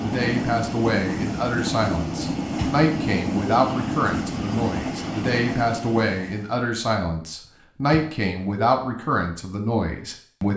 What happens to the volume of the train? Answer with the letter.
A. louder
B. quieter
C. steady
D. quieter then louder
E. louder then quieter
C.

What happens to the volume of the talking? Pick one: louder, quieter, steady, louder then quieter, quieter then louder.
steady.